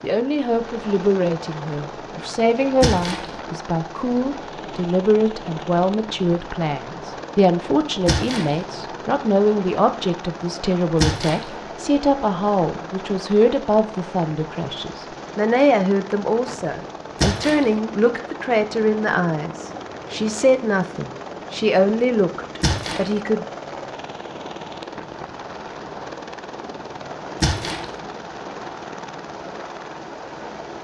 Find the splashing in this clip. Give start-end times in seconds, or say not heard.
2.8-3.2, 8.1-8.6, 11.0-11.4, 17.2-17.6, 22.6-23.1, 27.4-27.9.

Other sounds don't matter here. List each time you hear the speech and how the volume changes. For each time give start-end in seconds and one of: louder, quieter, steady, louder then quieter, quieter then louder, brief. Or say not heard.
0.0-23.4 steady.